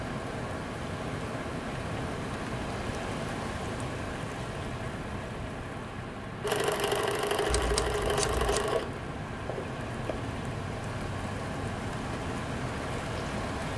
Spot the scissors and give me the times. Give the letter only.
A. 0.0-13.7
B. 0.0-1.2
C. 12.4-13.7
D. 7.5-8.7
D.